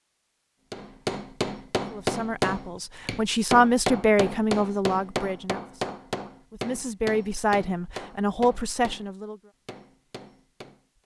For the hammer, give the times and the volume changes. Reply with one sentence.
You can hear the hammer from 0.7 to 11.0 s, getting quieter.